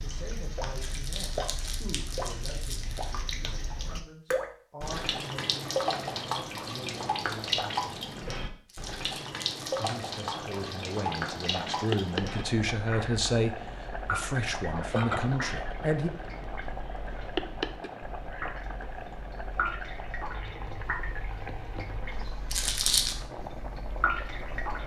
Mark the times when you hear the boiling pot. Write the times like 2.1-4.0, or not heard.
10.2-24.8.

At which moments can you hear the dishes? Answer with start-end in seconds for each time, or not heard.
not heard.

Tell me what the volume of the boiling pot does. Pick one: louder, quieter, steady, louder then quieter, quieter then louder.
quieter.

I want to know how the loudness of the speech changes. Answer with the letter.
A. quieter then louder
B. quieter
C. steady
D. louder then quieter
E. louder
E.